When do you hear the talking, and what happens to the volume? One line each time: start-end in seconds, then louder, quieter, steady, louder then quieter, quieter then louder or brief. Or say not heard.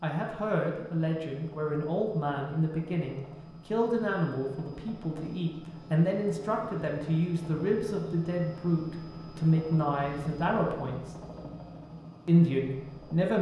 0.0-11.0 steady
12.2-13.3 brief.